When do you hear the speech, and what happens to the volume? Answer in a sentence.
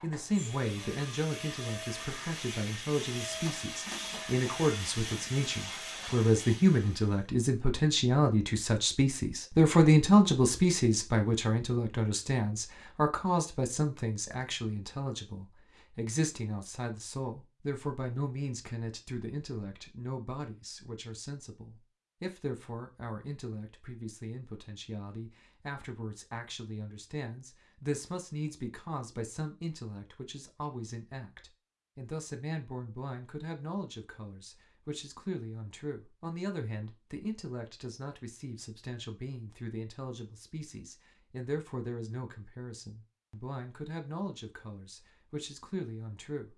You can hear the speech from 0.0 to 46.5 s, getting quieter.